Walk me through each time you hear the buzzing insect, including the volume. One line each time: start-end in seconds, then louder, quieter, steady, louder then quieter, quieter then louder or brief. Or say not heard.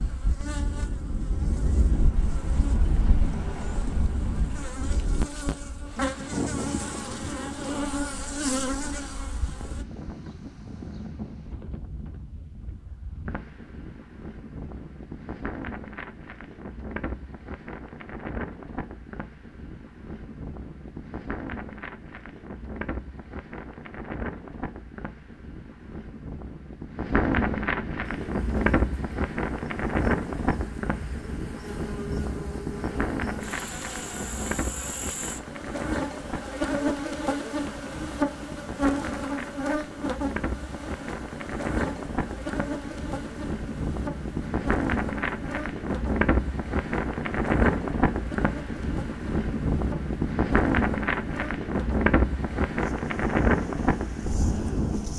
0.0-9.8 louder
28.1-55.1 louder then quieter.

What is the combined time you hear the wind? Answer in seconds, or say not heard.
55 s.